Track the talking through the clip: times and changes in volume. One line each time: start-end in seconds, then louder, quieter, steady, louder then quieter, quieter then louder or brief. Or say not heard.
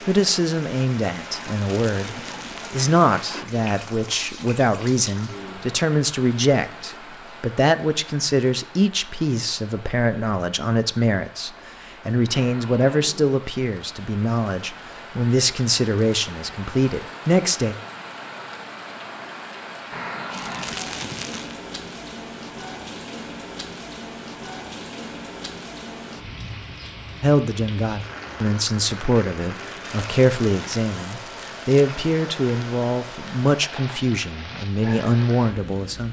0.1-17.8 steady
27.2-36.0 steady.